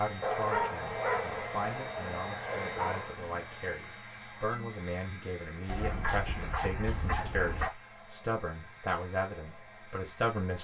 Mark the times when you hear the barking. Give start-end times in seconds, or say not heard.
0.2-3.1, 5.7-7.7.